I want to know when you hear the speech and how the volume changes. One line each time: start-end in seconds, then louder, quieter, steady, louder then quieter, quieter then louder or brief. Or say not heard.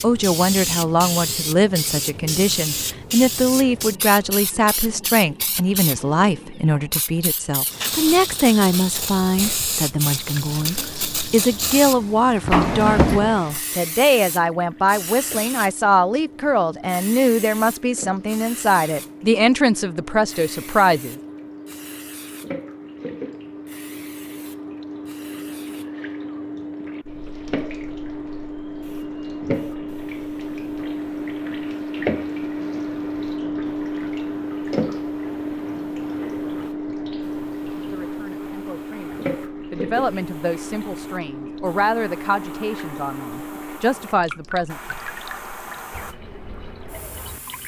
0.0-21.1 steady
37.8-44.8 louder.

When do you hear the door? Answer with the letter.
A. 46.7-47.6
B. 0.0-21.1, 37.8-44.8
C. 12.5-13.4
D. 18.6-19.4
C.